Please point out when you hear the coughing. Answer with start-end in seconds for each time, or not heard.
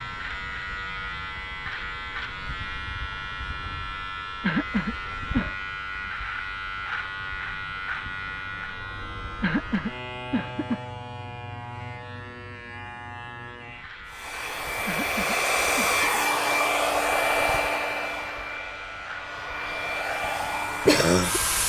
4.4-5.5, 9.4-10.8, 14.8-16.1.